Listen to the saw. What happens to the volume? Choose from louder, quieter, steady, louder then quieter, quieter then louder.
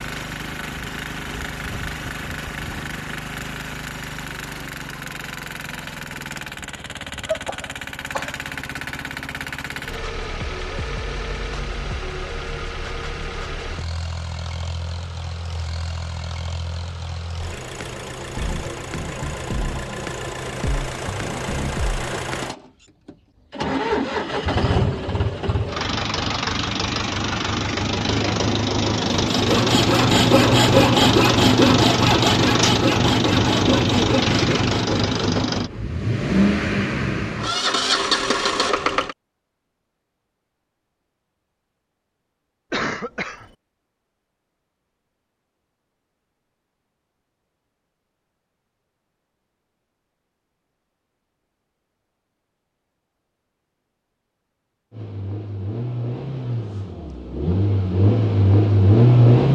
quieter.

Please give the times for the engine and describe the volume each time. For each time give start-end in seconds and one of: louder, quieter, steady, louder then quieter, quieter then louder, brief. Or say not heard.
0.0-39.1 louder
54.9-59.4 louder.